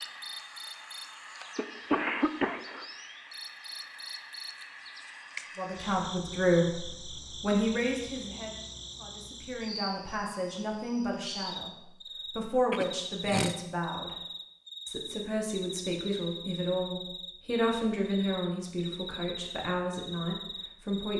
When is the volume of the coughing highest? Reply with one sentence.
The loudest moment of the coughing is at 2 seconds.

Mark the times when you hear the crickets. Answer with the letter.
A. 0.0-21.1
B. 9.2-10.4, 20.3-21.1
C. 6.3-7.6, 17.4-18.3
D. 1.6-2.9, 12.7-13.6
A.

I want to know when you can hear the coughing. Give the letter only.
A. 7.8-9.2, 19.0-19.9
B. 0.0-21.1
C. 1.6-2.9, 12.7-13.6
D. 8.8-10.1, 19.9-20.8
C.